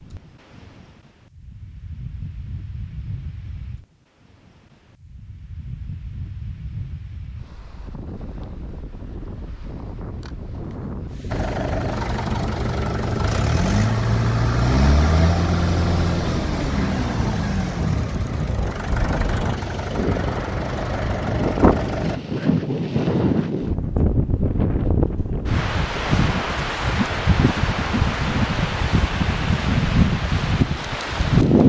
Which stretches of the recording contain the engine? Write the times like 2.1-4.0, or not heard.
11.3-22.2.